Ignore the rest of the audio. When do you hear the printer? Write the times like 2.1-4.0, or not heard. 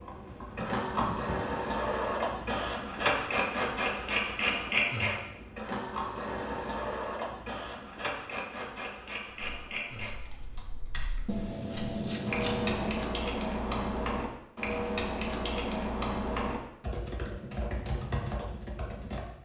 0.0-10.2.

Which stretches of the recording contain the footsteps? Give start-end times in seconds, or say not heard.
not heard.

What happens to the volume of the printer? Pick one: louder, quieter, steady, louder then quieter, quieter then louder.
quieter.